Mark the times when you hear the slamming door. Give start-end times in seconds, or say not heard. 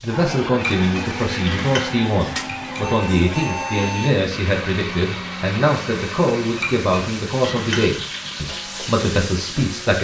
not heard.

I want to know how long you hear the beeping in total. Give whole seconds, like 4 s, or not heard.
2 s.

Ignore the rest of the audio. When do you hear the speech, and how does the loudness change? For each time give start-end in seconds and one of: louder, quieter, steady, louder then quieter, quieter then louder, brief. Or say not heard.
0.0-9.9 steady.